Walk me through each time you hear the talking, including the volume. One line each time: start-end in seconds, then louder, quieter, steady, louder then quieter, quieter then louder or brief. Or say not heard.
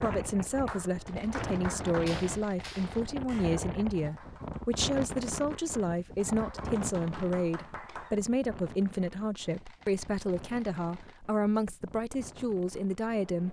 0.0-13.4 steady.